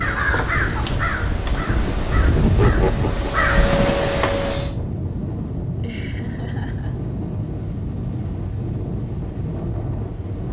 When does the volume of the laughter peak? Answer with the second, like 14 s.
3 s.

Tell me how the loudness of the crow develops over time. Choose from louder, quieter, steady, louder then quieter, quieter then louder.
quieter then louder.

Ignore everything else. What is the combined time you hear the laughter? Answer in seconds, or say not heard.
2 s.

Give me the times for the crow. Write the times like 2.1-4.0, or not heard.
0.0-4.8.